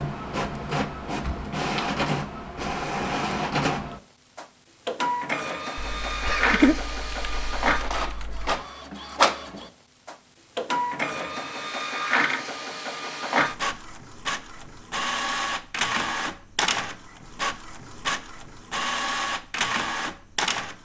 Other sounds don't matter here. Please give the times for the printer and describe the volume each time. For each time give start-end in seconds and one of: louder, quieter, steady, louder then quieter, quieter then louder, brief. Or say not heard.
0.0-20.7 steady.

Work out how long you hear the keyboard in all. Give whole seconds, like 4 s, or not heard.
3 s.